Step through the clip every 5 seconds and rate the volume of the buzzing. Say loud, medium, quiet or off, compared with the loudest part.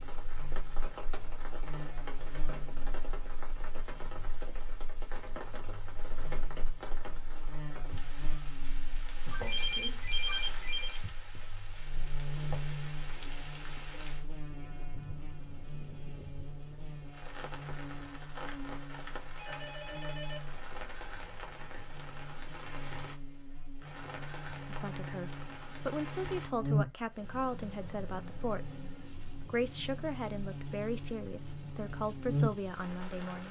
quiet, quiet, medium, medium, medium, loud, loud.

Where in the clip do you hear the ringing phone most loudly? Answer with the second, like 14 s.
10 s.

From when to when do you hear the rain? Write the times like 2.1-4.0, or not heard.
0.0-33.4.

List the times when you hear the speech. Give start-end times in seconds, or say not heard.
24.6-33.4.